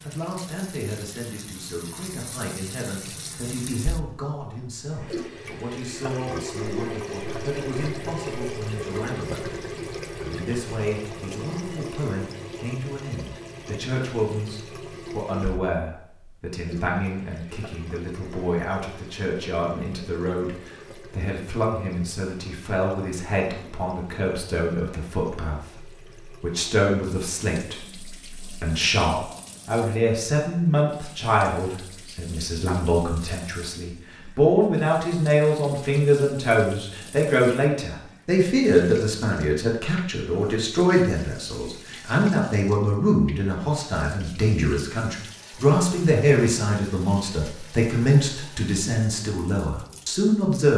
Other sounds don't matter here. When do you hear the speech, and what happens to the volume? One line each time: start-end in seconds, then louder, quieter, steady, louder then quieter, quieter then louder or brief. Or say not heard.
0.0-50.7 louder.